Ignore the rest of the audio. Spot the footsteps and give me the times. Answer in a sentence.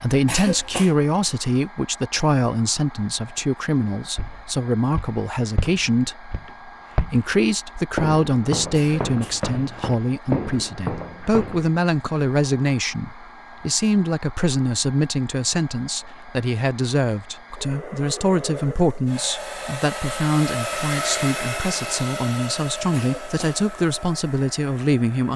You can hear the footsteps from 4.2 to 11.7 s.